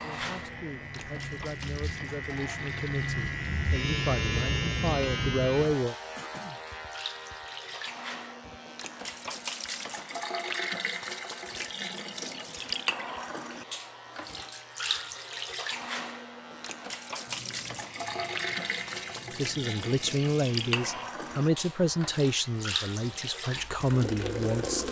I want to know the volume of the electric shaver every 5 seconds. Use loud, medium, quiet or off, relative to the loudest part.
loud, medium, quiet, quiet, quiet.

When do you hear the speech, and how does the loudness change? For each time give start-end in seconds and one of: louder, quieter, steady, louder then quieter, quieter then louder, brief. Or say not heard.
0.0-6.0 louder
19.3-24.8 quieter then louder.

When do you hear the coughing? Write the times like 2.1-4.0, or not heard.
6.2-6.6.